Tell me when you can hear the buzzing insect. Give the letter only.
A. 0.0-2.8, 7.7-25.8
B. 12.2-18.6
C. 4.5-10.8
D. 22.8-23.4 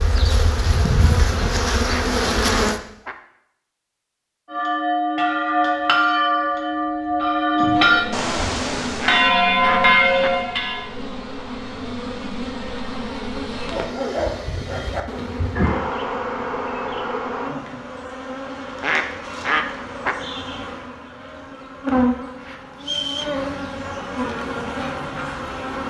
A.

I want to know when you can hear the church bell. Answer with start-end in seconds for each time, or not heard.
4.5-10.8.